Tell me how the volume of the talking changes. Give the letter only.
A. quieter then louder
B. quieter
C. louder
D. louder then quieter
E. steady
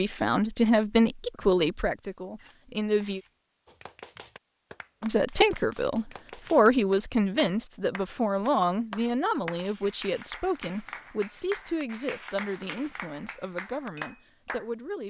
B.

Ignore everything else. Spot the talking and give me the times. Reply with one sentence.
The talking can be heard from 0.0 to 3.2 s and from 5.0 to 15.0 s.